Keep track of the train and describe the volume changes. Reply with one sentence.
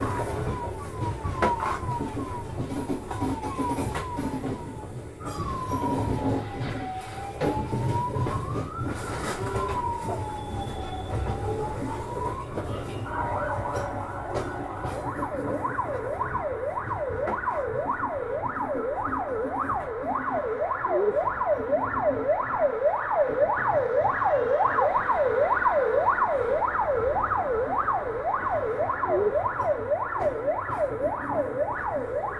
The loudness of the train goes down.